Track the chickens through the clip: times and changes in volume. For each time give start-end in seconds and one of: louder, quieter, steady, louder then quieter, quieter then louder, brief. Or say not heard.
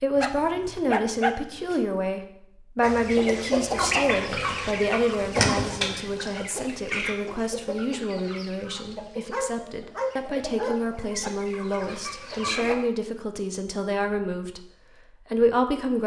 2.8-12.8 quieter.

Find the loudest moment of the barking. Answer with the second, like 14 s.
1 s.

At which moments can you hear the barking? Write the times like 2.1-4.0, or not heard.
0.1-1.8, 9.3-11.3.